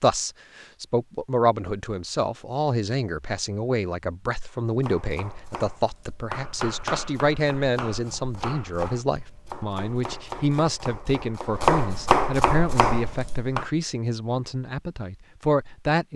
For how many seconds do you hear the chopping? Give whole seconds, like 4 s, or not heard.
9 s.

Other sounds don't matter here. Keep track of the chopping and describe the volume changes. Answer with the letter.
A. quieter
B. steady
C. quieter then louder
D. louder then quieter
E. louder
E.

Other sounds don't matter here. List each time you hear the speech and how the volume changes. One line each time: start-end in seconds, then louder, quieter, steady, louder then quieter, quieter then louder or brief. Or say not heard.
0.0-16.1 steady.